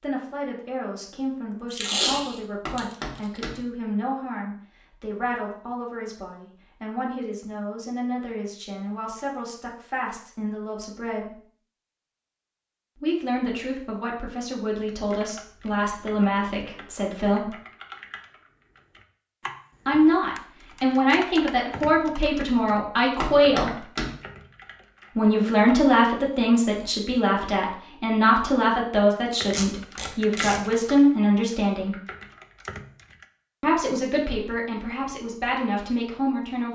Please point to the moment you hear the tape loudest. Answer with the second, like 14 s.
2 s.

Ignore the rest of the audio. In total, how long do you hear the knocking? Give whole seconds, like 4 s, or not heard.
2 s.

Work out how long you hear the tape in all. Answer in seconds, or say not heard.
3 s.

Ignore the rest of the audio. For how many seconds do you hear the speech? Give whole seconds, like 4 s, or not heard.
30 s.